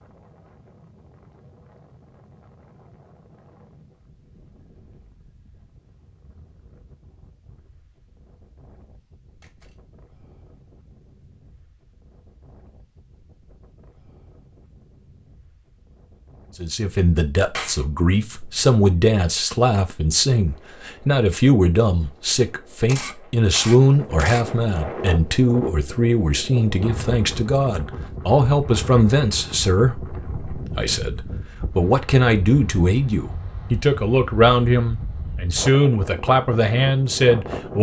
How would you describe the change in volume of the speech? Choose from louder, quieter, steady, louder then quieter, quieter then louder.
steady.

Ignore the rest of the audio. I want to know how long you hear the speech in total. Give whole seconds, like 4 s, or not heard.
21 s.